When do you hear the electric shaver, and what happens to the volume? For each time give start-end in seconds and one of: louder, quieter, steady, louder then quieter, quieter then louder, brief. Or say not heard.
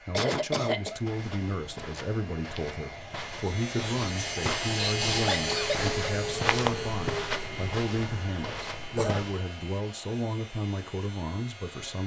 3.2-12.0 quieter.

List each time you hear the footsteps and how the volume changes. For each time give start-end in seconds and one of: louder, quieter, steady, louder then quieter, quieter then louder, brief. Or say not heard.
0.9-9.4 louder then quieter.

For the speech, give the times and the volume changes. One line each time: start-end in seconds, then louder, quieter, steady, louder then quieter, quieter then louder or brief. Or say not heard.
0.1-12.0 steady.